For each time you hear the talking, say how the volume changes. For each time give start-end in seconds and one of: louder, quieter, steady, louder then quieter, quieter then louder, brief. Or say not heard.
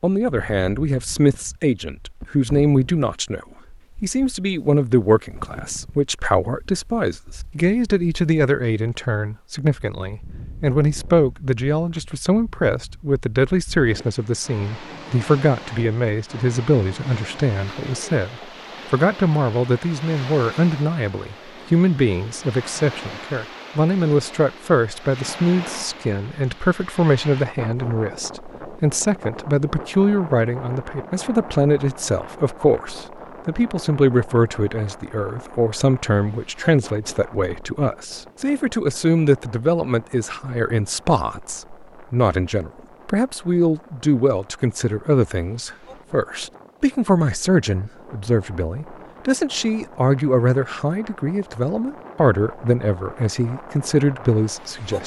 0.0-55.0 steady.